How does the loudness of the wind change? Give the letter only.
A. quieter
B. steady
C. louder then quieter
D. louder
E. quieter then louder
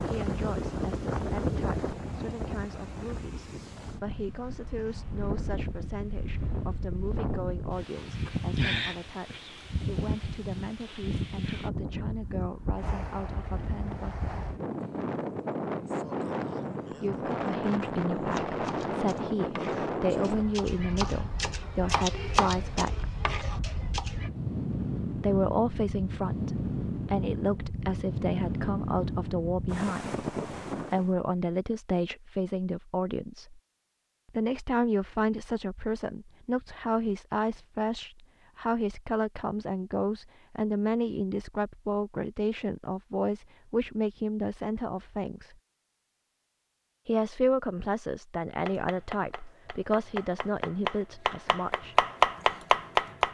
B.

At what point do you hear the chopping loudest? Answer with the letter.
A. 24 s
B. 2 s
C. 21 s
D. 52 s
D.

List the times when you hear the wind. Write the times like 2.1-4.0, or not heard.
0.0-31.1.